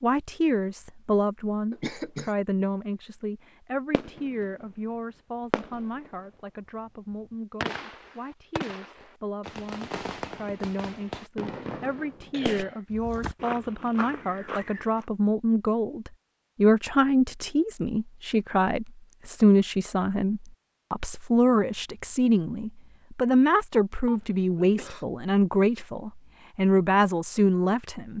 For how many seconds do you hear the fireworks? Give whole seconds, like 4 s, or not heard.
7 s.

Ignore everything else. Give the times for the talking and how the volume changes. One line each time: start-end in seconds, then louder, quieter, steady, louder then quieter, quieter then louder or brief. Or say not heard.
0.0-28.1 quieter then louder.